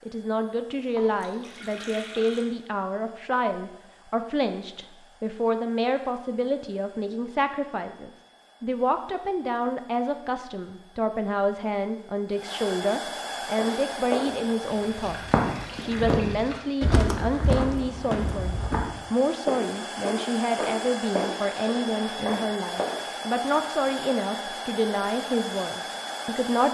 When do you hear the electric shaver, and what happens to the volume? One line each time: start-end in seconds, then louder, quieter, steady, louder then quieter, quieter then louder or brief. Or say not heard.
not heard.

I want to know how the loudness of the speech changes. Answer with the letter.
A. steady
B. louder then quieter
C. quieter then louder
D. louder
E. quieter
A.